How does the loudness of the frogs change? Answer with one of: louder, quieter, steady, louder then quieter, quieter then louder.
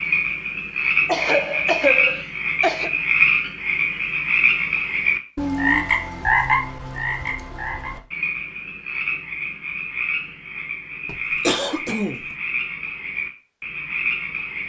quieter.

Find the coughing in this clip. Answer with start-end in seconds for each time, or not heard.
1.1-2.9, 11.1-12.2.